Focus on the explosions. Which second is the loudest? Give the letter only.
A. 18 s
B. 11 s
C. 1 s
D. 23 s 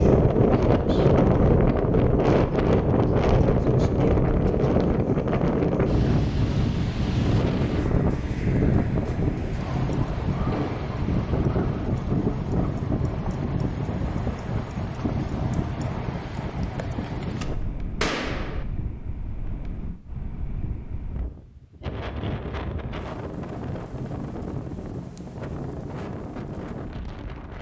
A.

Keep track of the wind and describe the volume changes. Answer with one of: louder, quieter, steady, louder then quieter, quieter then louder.
quieter.